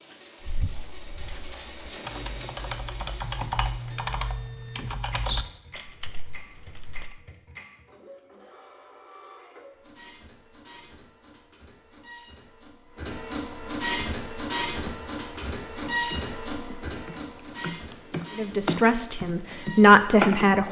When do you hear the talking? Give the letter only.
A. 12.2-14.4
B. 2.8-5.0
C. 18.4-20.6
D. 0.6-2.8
C.